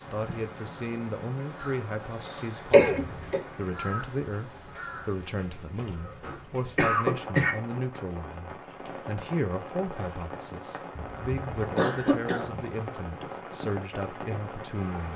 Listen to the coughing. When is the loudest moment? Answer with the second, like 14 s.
3 s.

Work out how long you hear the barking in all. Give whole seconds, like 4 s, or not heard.
not heard.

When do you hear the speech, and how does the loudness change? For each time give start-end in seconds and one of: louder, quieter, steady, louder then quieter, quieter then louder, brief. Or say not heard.
0.0-15.1 steady.